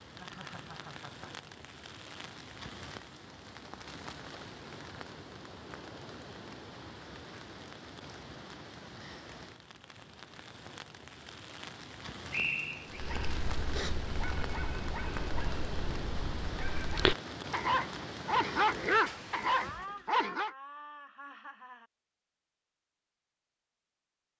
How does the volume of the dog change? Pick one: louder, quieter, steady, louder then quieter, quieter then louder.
louder.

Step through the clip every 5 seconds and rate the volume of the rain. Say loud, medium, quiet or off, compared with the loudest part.
medium, medium, loud, loud, off.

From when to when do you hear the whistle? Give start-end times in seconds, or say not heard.
12.3-13.0.